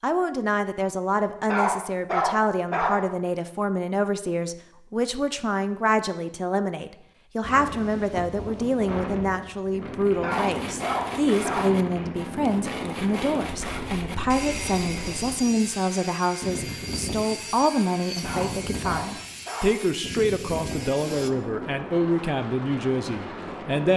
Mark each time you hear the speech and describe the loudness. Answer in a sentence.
The speech can be heard from 0.0 to 23.9 s, at a steady volume.